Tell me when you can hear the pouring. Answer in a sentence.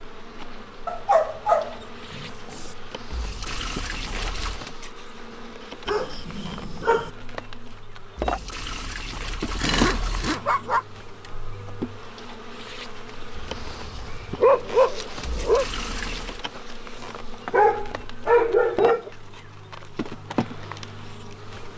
You can hear the pouring from 3.1 to 4.6 s, from 8.2 to 10.3 s and from 15.2 to 16.4 s.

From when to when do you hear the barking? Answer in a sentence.
The barking can be heard from 0.8 to 2.8 s, from 5.8 to 7.1 s, from 9.1 to 10.8 s, from 13.3 to 15.7 s and from 17.5 to 19.1 s.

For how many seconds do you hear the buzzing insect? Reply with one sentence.
You can hear the buzzing insect for 22 seconds altogether.